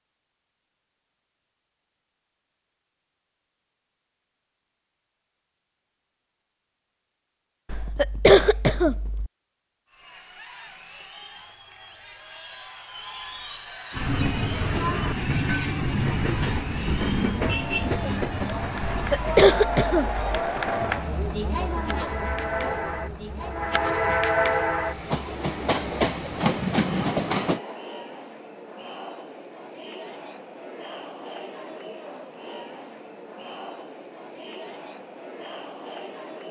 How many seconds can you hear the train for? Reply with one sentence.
The train can be heard for 14 seconds in total.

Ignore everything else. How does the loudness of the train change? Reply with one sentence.
The loudness of the train goes down, then up.